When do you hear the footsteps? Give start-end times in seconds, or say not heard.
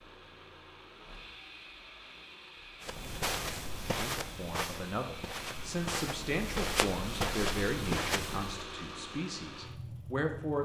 2.8-8.6.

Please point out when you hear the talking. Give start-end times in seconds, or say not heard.
3.8-10.6.